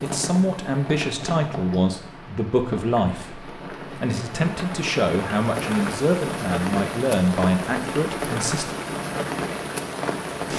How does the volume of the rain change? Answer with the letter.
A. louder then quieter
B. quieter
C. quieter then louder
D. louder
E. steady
D.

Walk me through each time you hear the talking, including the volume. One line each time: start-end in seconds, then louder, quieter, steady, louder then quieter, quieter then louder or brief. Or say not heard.
0.0-8.8 steady.